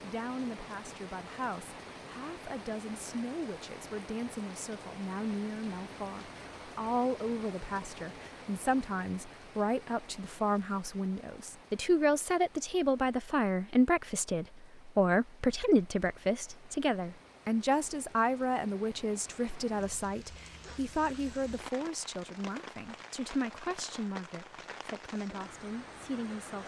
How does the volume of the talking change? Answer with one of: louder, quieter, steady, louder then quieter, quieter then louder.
louder then quieter.